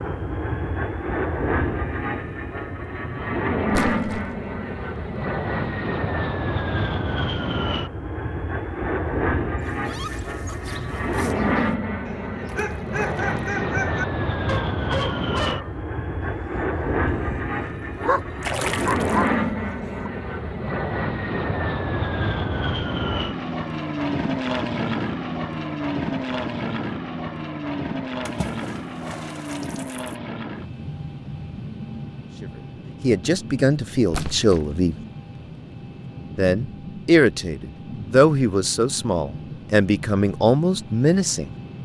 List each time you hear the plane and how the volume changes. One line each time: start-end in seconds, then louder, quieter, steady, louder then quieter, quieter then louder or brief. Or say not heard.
0.0-41.8 quieter.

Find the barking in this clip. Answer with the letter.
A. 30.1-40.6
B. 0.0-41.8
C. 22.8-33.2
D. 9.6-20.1
D.